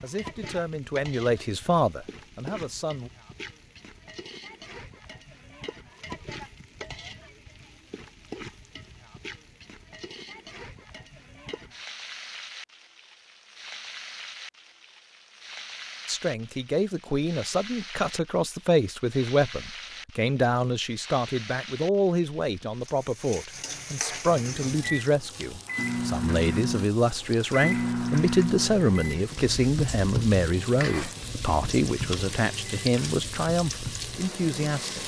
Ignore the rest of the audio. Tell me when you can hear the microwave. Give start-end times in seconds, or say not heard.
24.2-35.0.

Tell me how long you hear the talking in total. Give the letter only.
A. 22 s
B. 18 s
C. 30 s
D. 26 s
A.